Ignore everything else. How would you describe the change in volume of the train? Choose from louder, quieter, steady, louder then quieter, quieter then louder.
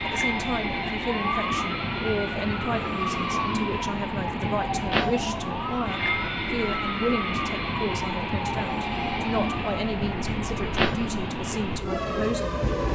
steady.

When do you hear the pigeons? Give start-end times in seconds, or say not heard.
not heard.